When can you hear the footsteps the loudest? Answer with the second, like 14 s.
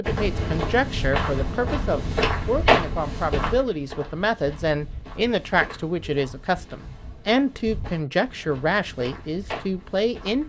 3 s.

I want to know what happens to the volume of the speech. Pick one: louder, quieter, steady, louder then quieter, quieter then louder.
steady.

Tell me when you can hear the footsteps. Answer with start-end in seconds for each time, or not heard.
0.0-10.4.